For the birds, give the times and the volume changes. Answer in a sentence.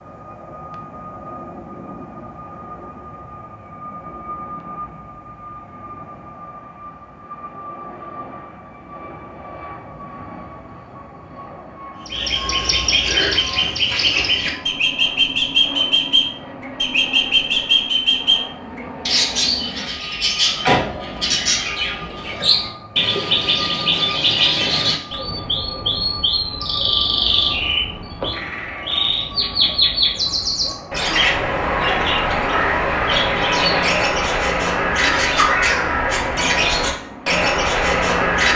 The birds can be heard from 12.1 to 38.5 s, at a steady volume.